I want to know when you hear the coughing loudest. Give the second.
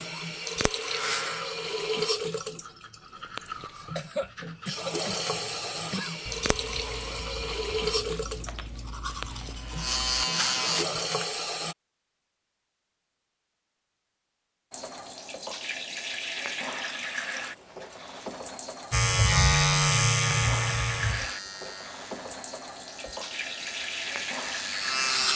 4 s.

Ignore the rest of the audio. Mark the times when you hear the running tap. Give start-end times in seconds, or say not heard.
0.0-11.8, 14.7-25.3.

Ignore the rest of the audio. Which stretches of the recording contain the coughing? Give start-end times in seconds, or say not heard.
3.7-6.3.